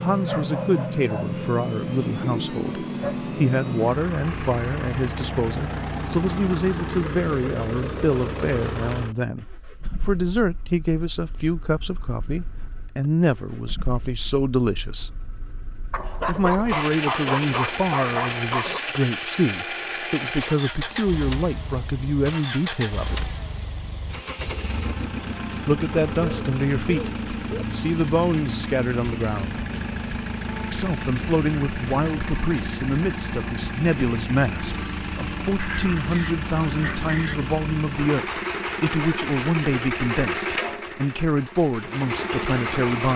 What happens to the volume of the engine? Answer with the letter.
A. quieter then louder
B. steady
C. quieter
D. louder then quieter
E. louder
A.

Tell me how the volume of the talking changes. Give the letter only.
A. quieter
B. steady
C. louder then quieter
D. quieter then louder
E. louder
B.